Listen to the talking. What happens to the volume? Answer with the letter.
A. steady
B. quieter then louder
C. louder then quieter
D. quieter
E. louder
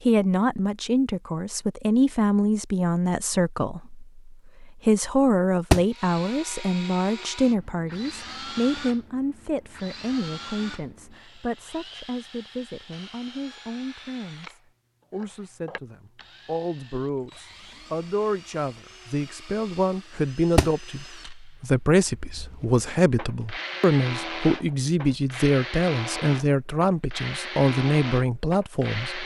B.